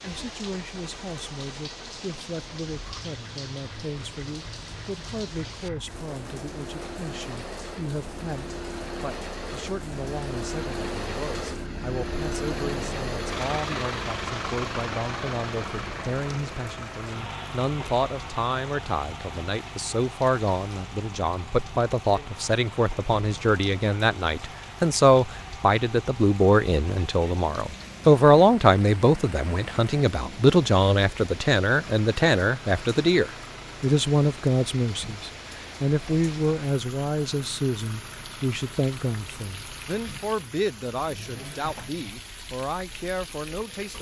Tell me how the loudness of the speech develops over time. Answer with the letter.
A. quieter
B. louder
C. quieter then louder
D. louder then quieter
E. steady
D.